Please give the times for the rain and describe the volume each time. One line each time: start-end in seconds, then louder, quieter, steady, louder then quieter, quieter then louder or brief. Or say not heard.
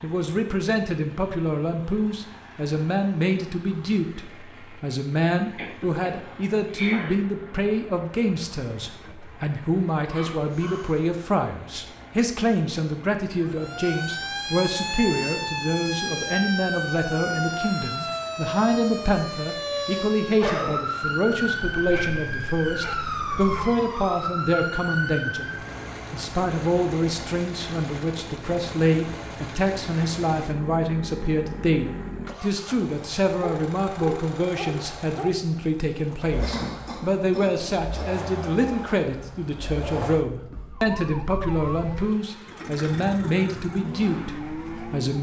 not heard.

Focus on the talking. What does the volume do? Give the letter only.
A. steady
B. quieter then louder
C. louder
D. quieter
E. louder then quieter
A.